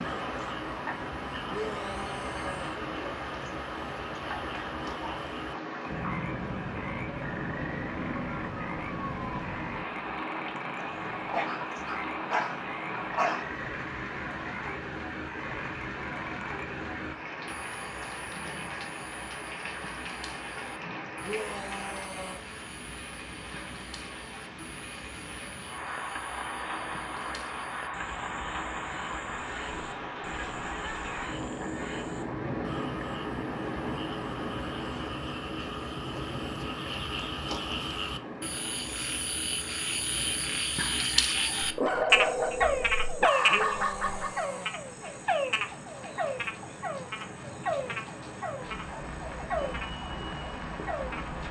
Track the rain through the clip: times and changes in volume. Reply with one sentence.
The rain can be heard from 0.0 to 51.4 s, getting quieter.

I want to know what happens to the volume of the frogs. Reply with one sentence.
The loudness of the frogs goes up.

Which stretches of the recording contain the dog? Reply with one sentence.
You can hear the dog from 10.8 to 13.4 s and from 41.6 to 44.5 s.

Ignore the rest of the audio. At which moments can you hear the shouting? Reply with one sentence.
The shouting can be heard from 1.5 to 2.8 s, from 21.2 to 22.4 s and from 43.5 to 44.8 s.